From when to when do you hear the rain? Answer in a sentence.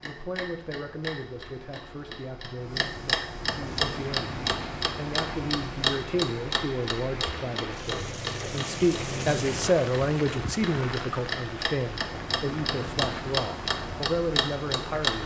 You can hear the rain from 3.6 to 15.2 s.